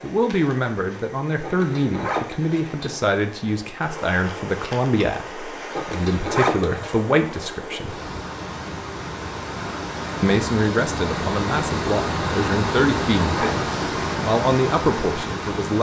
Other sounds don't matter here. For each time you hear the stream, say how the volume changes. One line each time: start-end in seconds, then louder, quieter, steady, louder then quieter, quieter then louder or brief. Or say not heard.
0.0-15.7 louder.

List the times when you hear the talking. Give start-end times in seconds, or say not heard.
0.0-8.0, 10.2-15.7.